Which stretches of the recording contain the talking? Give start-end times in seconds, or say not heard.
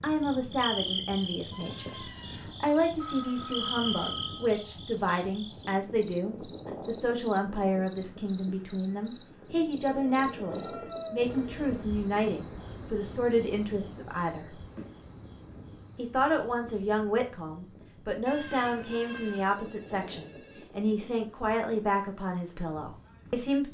0.0-14.6, 15.9-23.6.